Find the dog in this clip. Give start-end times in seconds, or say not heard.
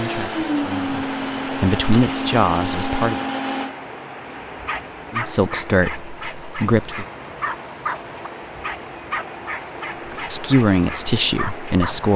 4.5-12.0.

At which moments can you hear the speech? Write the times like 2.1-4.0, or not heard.
0.0-3.2, 5.1-7.0, 10.2-12.1.